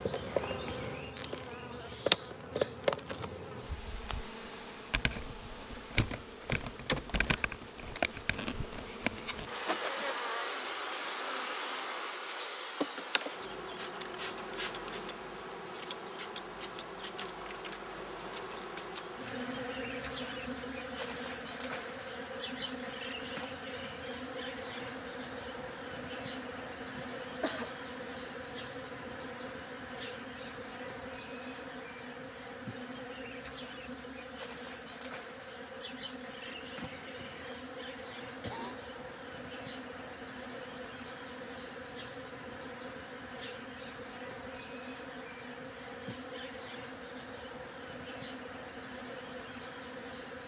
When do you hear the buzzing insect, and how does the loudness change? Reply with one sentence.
You can hear the buzzing insect from 0.0 to 50.4 s, getting quieter.